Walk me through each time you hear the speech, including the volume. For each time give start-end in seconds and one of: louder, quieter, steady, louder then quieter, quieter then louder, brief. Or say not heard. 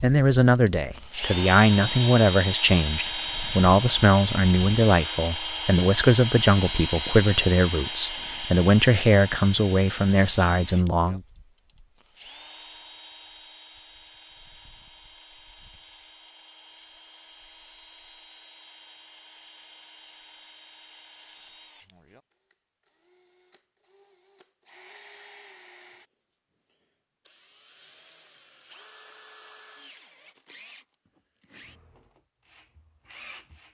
0.0-11.2 steady.